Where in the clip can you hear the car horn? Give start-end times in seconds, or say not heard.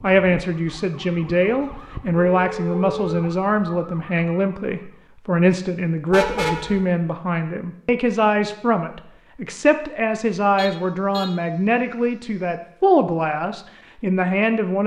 2.4-3.2, 6.1-6.8, 10.6-11.3.